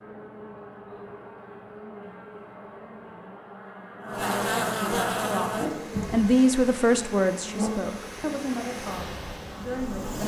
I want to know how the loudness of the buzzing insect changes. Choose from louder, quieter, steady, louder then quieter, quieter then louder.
louder then quieter.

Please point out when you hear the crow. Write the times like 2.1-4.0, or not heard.
not heard.